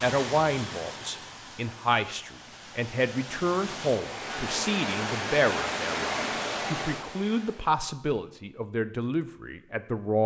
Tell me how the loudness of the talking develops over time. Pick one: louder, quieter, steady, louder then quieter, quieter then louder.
steady.